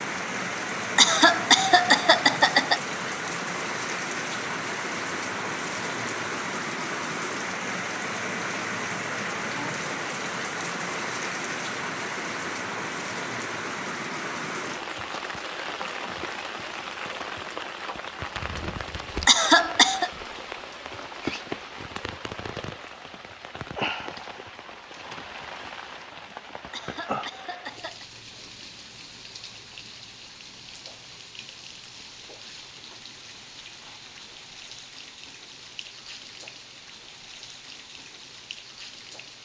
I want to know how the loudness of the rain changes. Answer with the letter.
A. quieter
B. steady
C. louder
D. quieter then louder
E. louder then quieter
A.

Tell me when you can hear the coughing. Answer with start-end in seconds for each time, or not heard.
0.9-2.8, 19.2-20.1, 26.7-28.1.